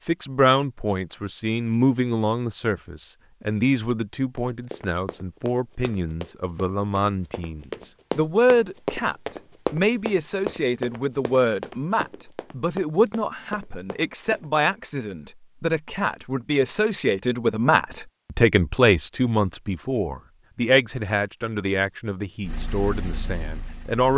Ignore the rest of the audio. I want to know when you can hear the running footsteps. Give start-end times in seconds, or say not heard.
4.3-14.8.